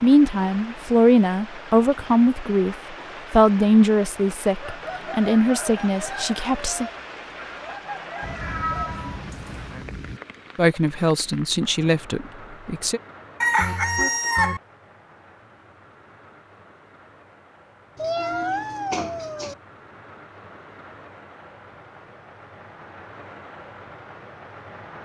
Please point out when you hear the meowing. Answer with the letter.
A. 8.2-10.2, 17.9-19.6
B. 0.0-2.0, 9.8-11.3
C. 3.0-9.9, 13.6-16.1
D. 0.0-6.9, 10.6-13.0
A.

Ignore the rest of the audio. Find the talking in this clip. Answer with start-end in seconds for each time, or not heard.
0.0-6.9, 10.6-13.0.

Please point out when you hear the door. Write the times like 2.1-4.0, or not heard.
not heard.